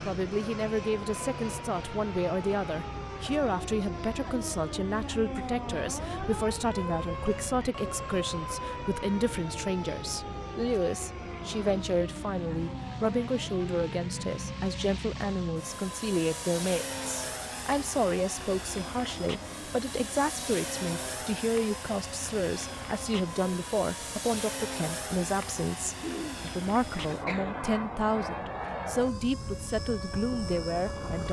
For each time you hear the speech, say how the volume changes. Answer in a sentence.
You can hear the speech from 0.1 to 31.2 s, at a steady volume.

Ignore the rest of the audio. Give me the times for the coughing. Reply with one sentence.
You can hear the coughing from 25.9 to 27.6 s.